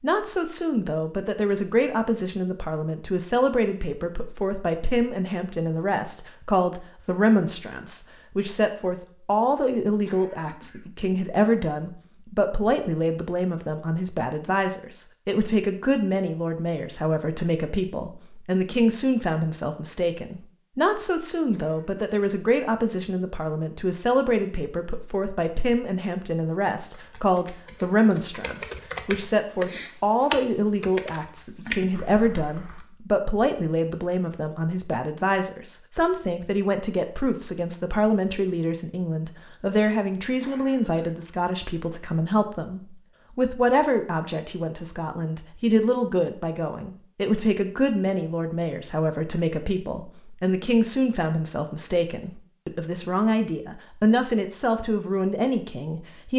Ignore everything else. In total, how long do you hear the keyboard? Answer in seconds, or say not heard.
6 s.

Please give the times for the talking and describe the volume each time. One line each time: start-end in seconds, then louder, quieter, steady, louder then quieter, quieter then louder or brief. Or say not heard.
0.0-56.3 steady.